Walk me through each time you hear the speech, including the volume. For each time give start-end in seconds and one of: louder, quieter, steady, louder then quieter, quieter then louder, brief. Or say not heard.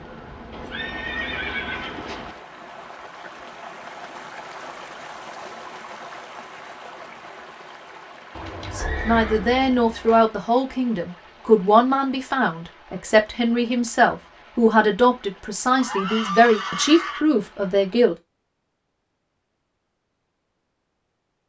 8.8-18.1 steady.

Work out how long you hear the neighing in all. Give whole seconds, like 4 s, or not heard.
5 s.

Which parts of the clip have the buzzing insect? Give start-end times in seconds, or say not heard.
0.0-2.5.